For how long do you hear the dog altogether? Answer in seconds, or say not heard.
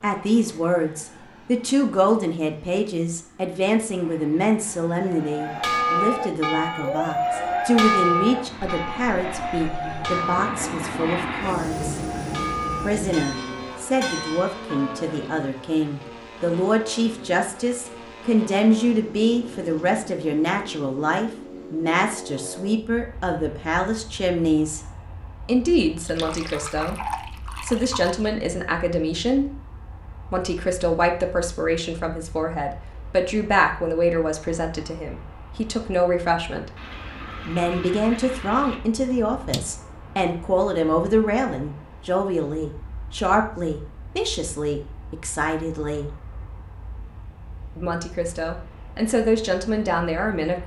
not heard.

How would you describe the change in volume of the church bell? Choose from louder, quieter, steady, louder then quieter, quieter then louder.
quieter.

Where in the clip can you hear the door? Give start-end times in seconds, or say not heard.
39.3-39.8.